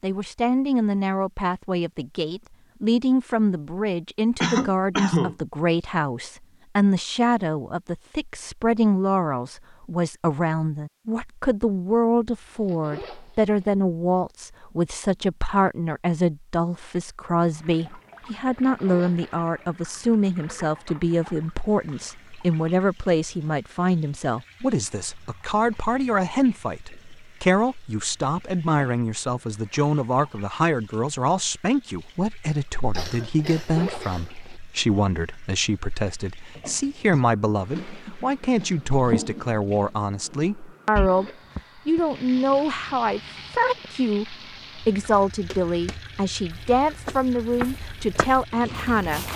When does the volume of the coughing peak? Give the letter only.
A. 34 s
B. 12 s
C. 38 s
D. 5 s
D.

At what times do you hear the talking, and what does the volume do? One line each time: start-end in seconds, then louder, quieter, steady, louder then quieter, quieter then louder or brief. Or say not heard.
0.0-49.3 steady.